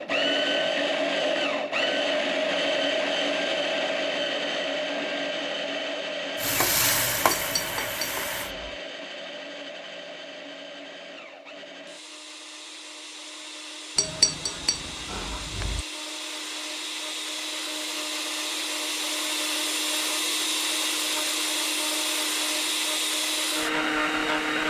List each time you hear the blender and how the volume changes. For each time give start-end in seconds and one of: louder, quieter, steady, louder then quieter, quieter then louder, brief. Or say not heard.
0.0-24.6 quieter then louder.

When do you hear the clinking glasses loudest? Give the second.
14 s.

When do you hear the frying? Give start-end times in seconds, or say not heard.
6.3-8.6.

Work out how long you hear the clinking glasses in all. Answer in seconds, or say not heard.
3 s.